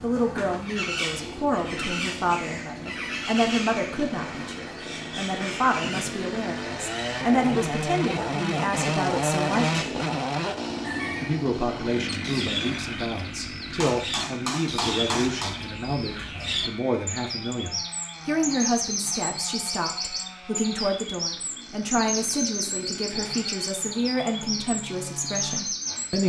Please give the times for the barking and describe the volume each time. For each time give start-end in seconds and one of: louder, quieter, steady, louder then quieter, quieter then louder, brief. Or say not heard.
not heard.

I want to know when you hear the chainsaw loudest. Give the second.
9 s.